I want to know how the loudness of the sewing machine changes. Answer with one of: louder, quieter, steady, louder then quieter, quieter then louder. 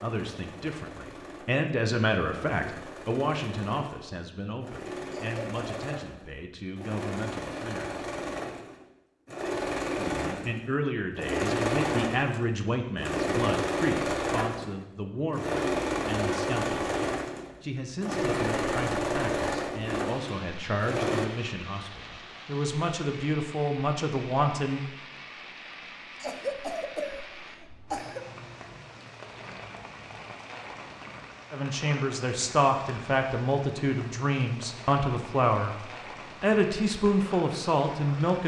louder.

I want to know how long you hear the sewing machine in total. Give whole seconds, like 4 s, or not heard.
21 s.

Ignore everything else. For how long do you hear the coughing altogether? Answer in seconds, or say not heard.
3 s.